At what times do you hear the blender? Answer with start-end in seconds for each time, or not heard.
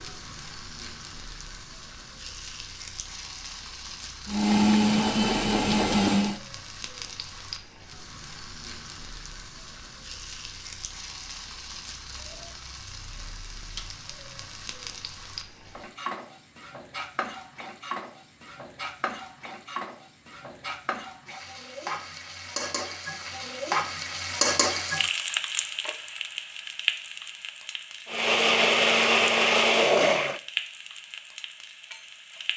4.2-6.4, 28.1-30.4.